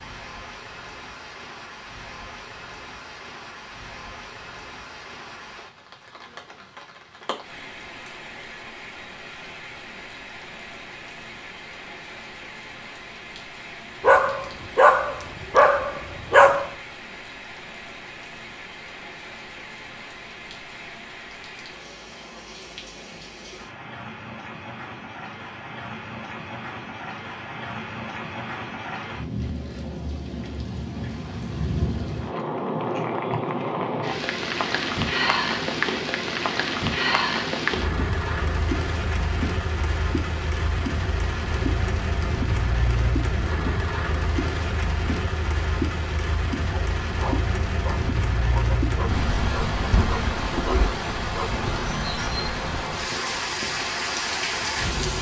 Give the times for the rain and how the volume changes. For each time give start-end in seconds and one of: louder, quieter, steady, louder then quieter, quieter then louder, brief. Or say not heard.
0.0-55.1 louder.